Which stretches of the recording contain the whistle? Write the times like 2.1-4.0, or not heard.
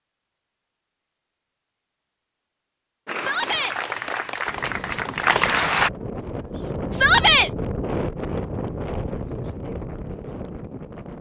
not heard.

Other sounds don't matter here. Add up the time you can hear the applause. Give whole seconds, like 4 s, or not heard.
3 s.